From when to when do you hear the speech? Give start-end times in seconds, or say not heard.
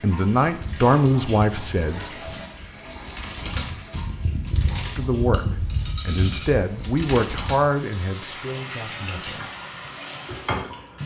0.0-2.0, 4.9-9.5.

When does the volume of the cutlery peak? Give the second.
6 s.